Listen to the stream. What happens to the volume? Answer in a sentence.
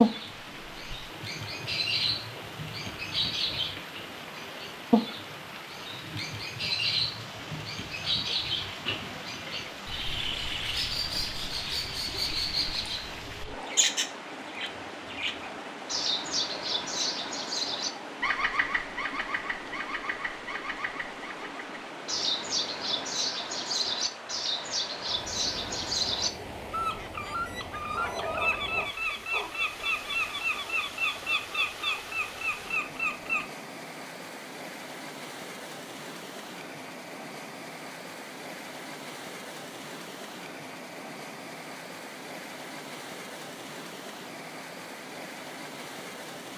The volume of the stream stays about the same.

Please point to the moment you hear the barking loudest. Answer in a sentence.
The volume of the barking peaks at 28 seconds.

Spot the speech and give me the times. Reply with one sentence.
You can't hear the speech here.